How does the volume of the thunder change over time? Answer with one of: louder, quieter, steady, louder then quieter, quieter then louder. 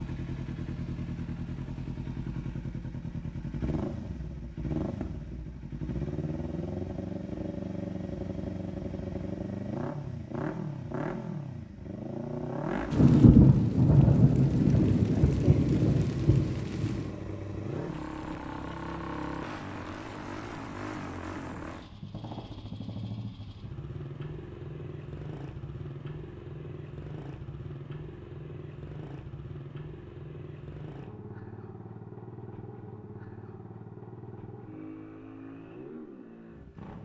quieter.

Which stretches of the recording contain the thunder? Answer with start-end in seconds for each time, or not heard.
12.9-17.1.